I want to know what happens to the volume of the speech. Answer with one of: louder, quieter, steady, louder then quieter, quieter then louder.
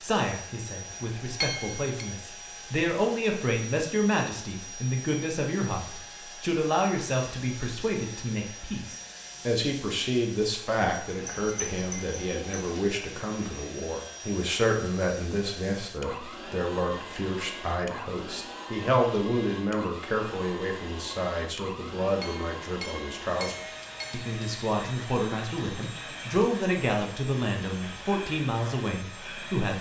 steady.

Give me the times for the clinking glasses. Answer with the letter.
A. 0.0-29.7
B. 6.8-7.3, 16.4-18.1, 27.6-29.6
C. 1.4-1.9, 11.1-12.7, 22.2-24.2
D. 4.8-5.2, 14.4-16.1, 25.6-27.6
C.